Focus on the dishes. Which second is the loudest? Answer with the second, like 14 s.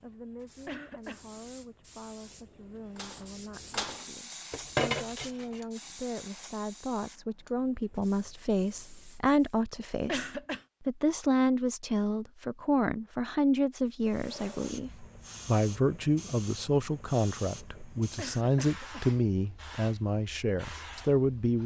5 s.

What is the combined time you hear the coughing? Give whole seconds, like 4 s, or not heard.
2 s.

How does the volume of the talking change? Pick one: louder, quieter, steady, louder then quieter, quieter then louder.
louder.